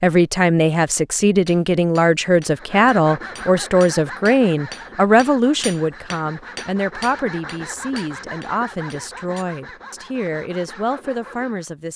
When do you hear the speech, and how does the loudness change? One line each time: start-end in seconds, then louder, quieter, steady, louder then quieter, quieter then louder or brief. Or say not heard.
0.0-11.9 quieter.